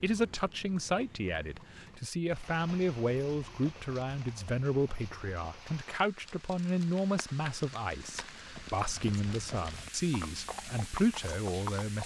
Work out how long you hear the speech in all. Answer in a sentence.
You can hear the speech for 12 seconds altogether.